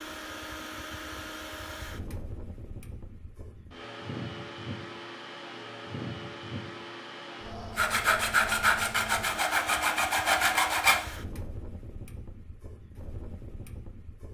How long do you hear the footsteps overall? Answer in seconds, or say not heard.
not heard.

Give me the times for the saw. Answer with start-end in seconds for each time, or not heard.
7.8-11.2.